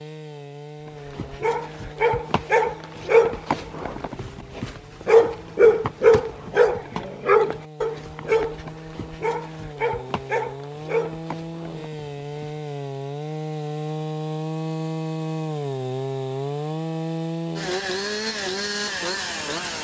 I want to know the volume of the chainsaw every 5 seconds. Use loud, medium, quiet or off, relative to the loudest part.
quiet, quiet, loud, loud.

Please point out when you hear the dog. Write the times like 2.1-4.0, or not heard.
0.8-12.5.